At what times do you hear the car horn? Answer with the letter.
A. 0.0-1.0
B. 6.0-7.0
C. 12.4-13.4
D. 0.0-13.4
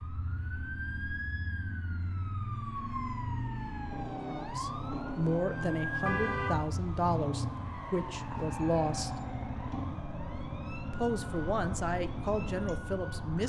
B.